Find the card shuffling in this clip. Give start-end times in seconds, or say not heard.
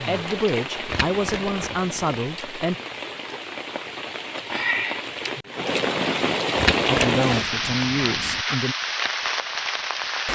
0.8-2.1, 6.5-8.4.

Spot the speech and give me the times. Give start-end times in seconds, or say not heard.
0.1-2.8, 6.8-8.8.